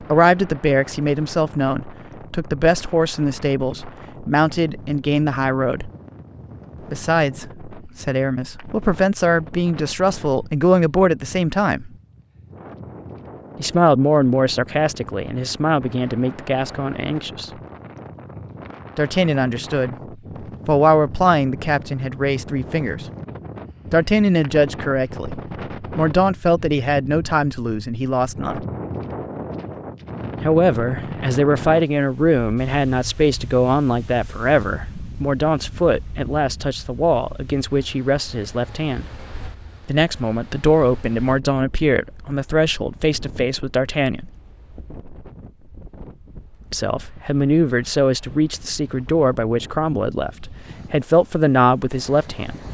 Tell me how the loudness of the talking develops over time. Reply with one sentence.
The loudness of the talking stays about the same.